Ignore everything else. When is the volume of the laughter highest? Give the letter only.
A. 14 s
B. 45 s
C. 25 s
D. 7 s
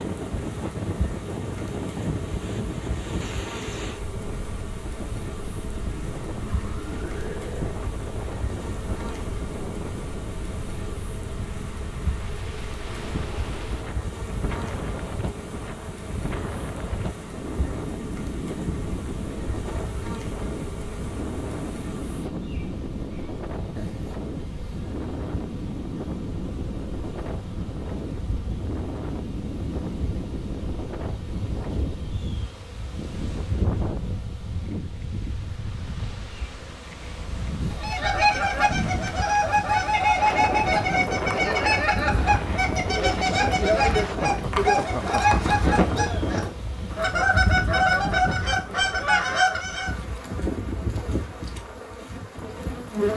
B.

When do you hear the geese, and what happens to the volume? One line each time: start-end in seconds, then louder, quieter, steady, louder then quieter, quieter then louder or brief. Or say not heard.
37.7-49.9 steady.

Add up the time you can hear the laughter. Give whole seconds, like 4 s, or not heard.
4 s.